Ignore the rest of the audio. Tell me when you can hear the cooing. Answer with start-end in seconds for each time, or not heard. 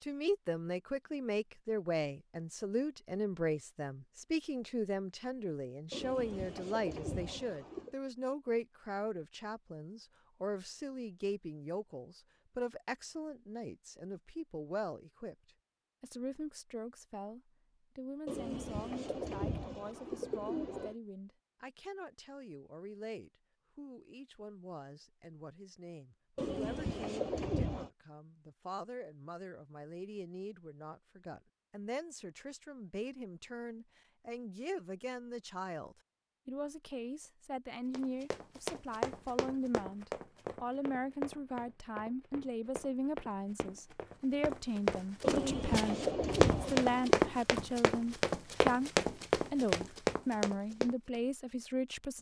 5.9-8.0, 18.2-20.9, 26.4-27.9, 45.2-47.1.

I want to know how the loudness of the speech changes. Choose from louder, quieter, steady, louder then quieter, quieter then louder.
quieter then louder.